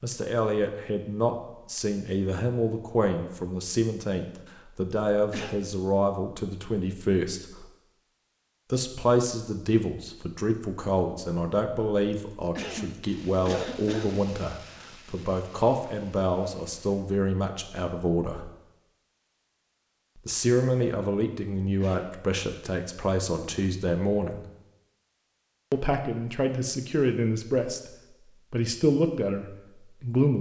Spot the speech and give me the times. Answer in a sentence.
You can hear the speech from 0.0 to 7.7 s, from 8.7 to 18.5 s, from 20.1 to 24.4 s, from 25.7 to 27.9 s and from 28.5 to 30.3 s.